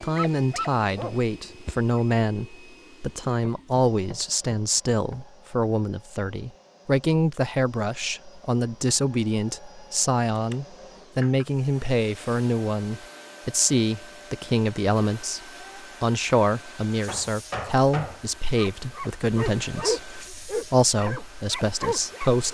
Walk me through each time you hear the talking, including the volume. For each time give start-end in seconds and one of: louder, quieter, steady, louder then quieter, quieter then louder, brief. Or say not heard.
0.0-22.4 steady.